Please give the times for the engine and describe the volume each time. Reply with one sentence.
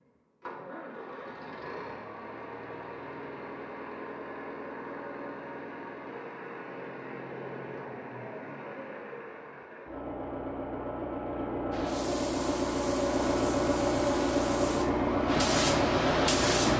The engine can be heard from 0.0 to 16.7 s, getting louder.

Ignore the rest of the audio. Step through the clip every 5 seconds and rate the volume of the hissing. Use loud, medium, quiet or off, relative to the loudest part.
off, off, quiet, loud.